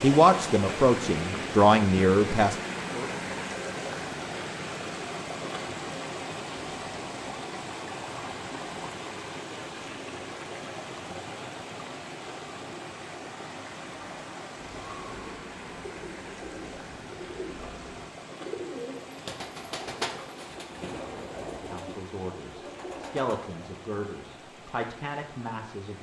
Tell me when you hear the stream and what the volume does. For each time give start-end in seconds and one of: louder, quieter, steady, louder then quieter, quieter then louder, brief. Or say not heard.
0.0-25.9 quieter.